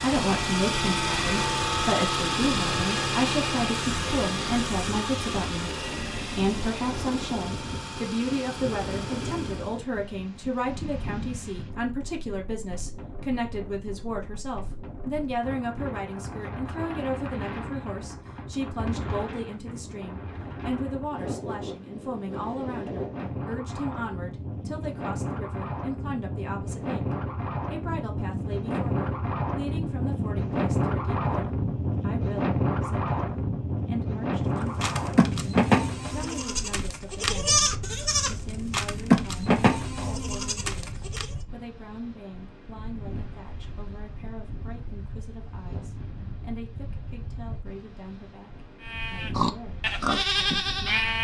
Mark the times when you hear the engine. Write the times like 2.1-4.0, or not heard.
0.0-9.8.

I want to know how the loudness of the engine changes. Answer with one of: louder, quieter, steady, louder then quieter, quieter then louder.
quieter.